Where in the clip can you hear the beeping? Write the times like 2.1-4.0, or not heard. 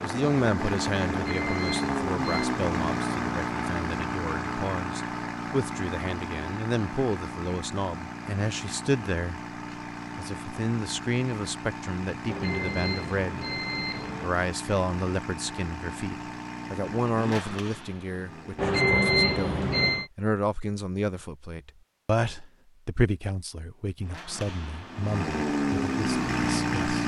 1.1-2.5, 12.2-14.3, 18.6-20.1.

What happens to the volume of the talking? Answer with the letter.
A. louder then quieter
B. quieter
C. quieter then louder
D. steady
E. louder
D.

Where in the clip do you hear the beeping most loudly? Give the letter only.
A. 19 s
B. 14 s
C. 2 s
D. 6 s
A.